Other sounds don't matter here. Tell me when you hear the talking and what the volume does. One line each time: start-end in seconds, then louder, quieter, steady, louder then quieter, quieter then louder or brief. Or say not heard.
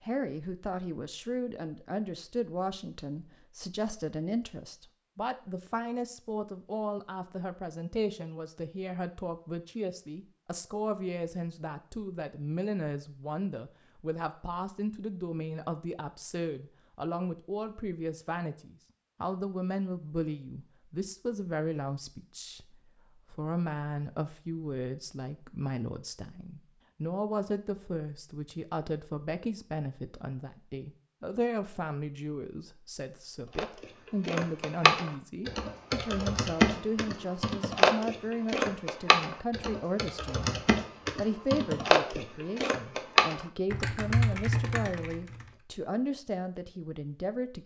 0.0-47.6 steady.